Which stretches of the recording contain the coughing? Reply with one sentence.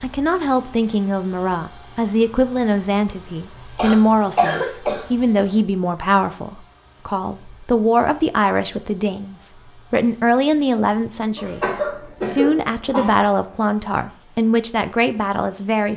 The coughing can be heard from 3.8 to 5.0 s and from 11.3 to 13.2 s.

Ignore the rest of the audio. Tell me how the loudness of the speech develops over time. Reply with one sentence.
The loudness of the speech stays about the same.